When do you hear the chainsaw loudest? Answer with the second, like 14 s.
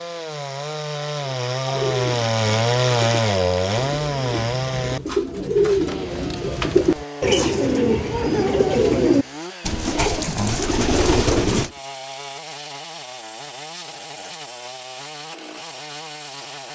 3 s.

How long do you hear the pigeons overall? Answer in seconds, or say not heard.
10 s.